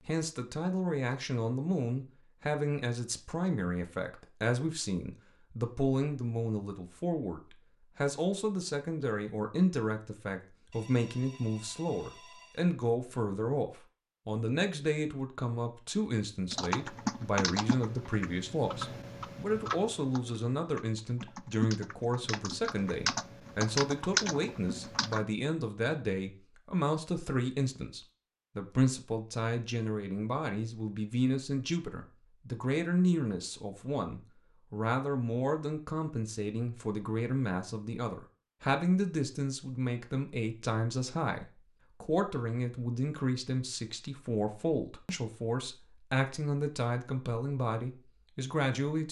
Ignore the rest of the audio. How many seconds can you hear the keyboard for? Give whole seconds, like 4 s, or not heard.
9 s.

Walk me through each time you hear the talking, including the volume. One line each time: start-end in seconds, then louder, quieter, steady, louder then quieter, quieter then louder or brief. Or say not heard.
0.1-49.0 steady.